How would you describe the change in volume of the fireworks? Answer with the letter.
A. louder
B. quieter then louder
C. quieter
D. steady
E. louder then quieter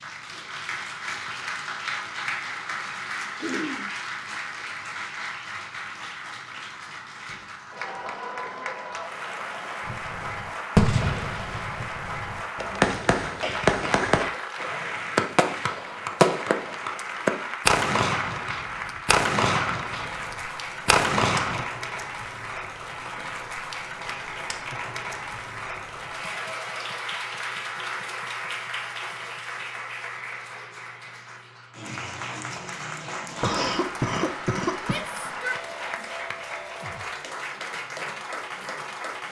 D.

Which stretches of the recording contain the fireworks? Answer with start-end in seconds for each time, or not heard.
9.8-21.6.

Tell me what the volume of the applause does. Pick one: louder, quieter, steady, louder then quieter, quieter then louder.
steady.